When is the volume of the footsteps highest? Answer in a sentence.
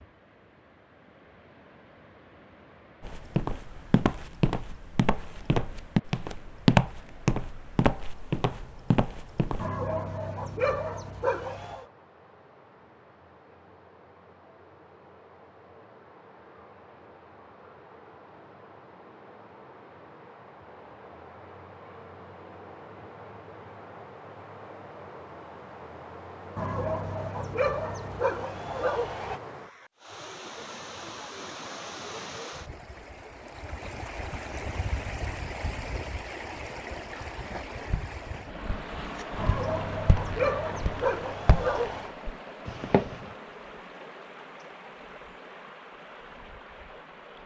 The loudest moment of the footsteps is at 7 seconds.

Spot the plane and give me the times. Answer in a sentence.
The plane can't be heard in this clip.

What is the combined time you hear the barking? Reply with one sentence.
The barking can be heard for 8 seconds in total.